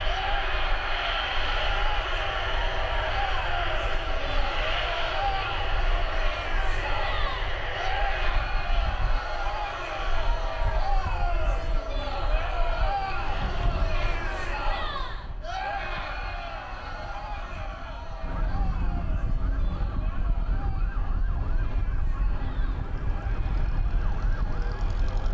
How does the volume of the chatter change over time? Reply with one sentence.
The loudness of the chatter goes down.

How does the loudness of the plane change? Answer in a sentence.
The loudness of the plane goes down.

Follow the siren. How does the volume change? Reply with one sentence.
The loudness of the siren goes up.